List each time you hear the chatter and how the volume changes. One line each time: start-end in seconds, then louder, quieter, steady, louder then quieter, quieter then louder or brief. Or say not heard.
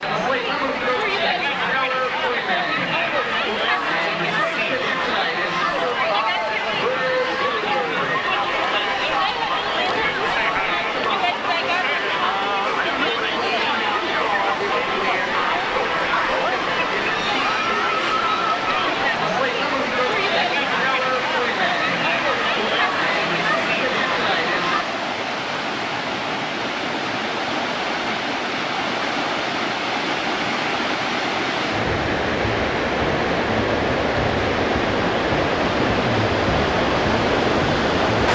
0.0-24.9 steady.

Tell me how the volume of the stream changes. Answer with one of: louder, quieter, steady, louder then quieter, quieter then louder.
louder.